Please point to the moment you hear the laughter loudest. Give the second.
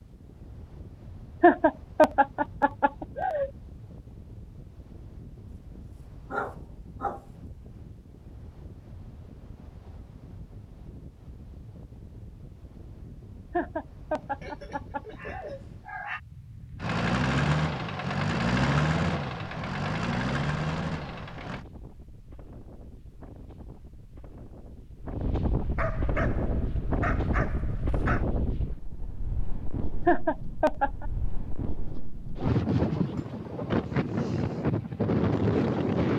2 s.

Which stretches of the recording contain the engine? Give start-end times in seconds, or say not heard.
16.8-21.6.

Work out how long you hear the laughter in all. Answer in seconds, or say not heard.
5 s.